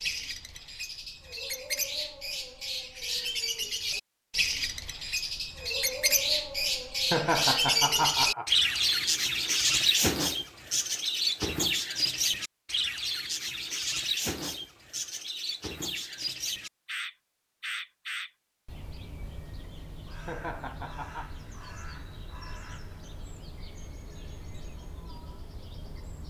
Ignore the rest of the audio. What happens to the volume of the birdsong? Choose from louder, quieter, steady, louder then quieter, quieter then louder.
louder then quieter.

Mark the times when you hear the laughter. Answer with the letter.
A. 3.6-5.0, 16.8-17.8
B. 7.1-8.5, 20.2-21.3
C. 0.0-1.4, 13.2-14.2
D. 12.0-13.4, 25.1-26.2
B.